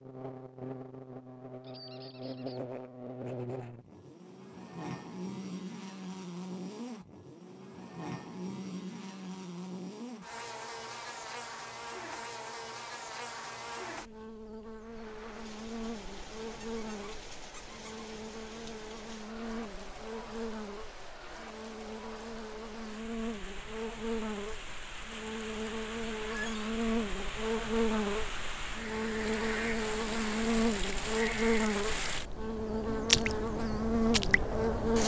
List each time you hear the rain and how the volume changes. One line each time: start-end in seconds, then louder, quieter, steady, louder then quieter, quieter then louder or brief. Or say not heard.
14.8-35.0 louder.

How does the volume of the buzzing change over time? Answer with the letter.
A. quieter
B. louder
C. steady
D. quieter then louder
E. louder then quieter
B.